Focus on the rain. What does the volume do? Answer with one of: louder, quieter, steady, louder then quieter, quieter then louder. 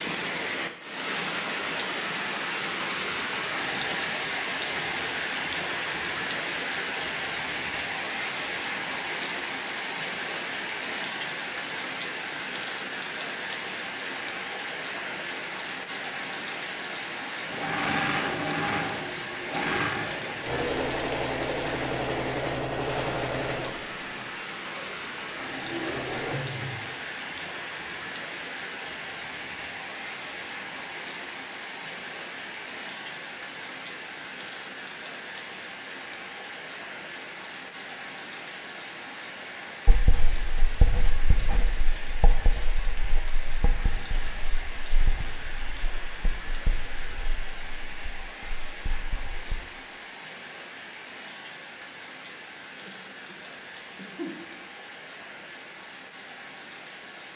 quieter.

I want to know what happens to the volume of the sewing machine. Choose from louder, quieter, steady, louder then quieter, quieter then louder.
quieter.